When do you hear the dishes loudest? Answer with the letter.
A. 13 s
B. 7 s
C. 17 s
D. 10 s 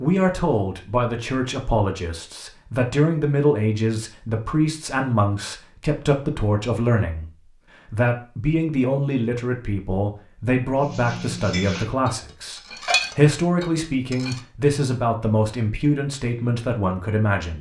A.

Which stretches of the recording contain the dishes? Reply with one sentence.
The dishes can be heard from 10.8 to 14.4 s.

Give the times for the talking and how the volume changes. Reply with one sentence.
The talking can be heard from 0.0 to 17.5 s, at a steady volume.